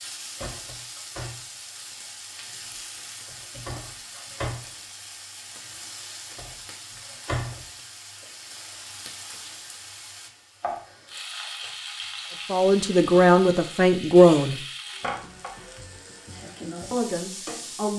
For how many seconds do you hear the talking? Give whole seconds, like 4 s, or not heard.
3 s.